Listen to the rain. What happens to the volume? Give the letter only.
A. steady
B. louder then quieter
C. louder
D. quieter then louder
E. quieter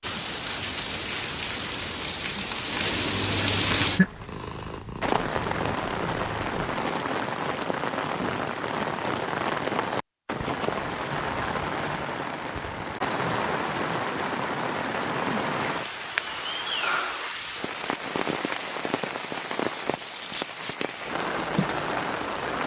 A.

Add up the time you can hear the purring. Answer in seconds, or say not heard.
3 s.